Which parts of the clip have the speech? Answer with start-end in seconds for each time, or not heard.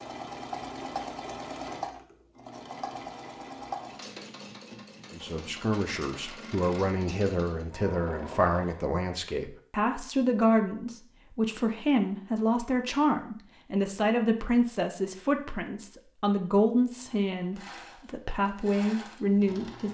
5.1-19.9.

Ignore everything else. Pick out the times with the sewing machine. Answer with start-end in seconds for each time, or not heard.
0.0-8.9, 17.4-19.9.